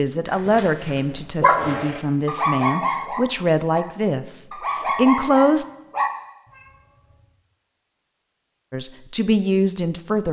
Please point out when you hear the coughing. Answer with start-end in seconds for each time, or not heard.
not heard.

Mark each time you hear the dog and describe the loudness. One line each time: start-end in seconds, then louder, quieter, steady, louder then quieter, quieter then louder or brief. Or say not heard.
0.2-6.1 quieter then louder.